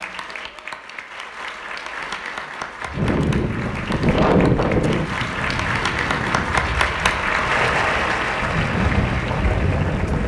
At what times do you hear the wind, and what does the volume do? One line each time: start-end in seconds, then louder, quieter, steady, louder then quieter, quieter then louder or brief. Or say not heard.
2.9-10.2 quieter then louder.